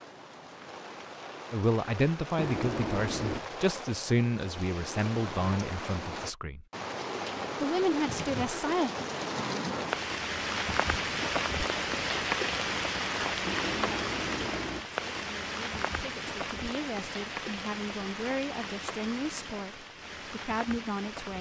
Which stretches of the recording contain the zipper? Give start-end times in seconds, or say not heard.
2.4-3.4, 13.4-14.8.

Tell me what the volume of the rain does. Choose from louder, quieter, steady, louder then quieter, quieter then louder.
louder then quieter.